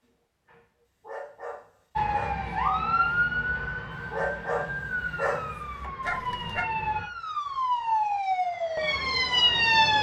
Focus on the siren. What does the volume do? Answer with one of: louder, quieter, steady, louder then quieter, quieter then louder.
quieter then louder.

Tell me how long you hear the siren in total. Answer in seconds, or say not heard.
8 s.